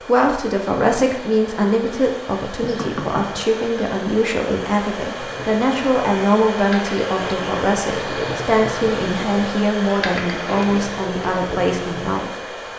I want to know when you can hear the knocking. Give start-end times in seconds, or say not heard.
2.6-3.4.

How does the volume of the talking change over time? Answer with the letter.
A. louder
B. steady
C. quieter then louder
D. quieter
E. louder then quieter
B.